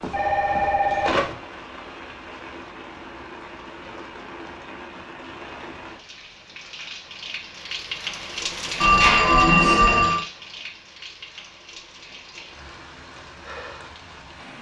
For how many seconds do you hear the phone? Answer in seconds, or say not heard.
3 s.